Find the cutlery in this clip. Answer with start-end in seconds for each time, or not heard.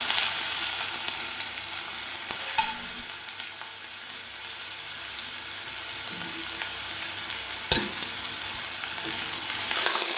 2.5-3.0, 7.7-8.6.